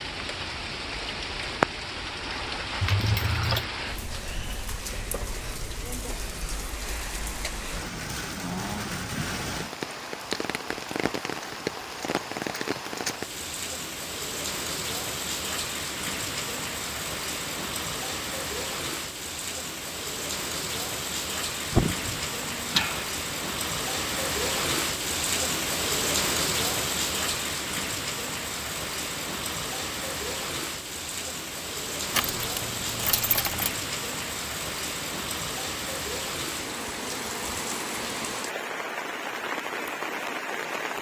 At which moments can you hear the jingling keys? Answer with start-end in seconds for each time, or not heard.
2.8-3.7, 21.7-23.1, 32.1-33.8.